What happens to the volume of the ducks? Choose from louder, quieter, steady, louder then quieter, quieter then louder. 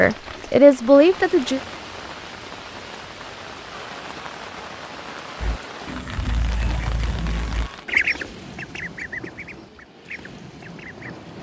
louder then quieter.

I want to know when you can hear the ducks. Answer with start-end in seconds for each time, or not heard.
5.4-11.1.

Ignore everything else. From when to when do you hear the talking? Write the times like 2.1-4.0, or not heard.
0.0-1.6.